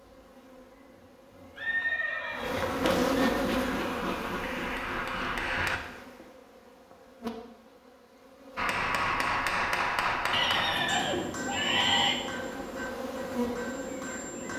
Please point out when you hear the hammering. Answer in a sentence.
The hammering can be heard from 3.5 to 5.8 s and from 8.6 to 14.5 s.